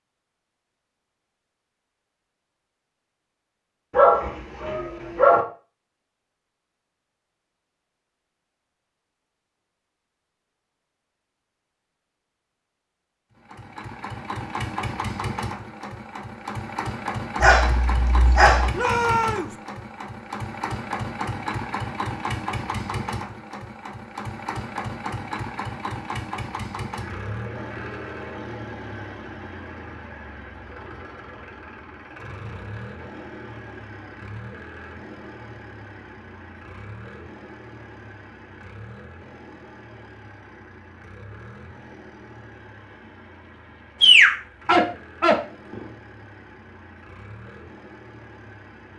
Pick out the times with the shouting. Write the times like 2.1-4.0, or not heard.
18.8-19.6.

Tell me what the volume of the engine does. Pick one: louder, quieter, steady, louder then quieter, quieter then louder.
quieter.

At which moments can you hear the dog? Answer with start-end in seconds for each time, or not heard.
4.0-5.4, 17.4-18.7, 44.0-45.8.